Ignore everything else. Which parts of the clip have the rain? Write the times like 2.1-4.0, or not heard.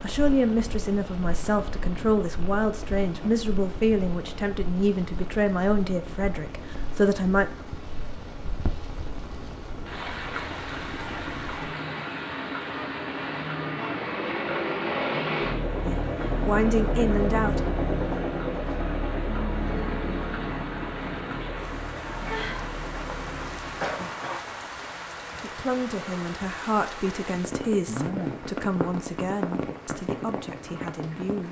0.0-31.4.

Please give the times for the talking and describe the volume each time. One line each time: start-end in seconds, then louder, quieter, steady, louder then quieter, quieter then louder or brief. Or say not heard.
0.0-7.5 steady
15.8-17.6 brief
25.4-31.4 quieter.